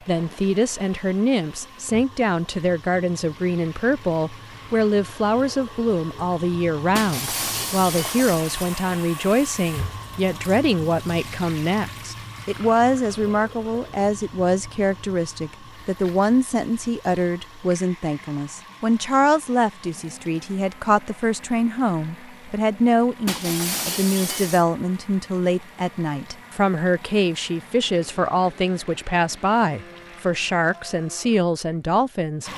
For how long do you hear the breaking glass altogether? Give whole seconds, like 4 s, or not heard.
3 s.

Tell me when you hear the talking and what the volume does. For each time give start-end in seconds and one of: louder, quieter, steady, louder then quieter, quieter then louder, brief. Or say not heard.
0.1-32.5 steady.